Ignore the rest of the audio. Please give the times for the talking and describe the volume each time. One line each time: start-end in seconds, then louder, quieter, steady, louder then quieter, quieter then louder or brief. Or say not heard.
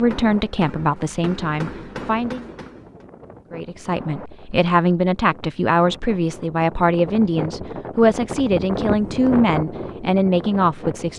0.0-2.5 brief
3.5-11.1 steady.